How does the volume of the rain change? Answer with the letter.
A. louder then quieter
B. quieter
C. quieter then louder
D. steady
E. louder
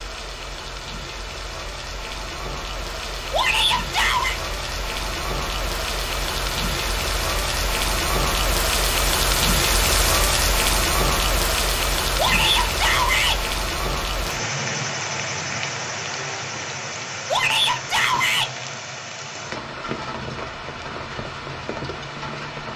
A.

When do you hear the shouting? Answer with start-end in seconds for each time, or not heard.
3.3-4.4, 12.2-13.4, 17.2-18.5.